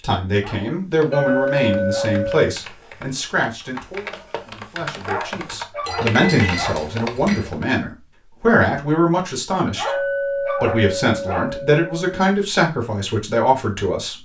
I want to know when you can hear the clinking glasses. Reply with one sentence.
The clinking glasses can be heard from 1.1 to 2.5 s, from 5.8 to 7.5 s and from 9.8 to 12.2 s.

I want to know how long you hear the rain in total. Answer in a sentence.
You can't hear the rain here.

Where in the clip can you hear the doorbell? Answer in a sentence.
The doorbell can't be heard in this clip.